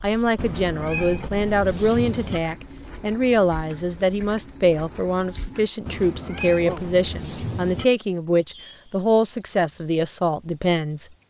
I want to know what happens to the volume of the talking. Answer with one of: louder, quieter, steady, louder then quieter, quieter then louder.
steady.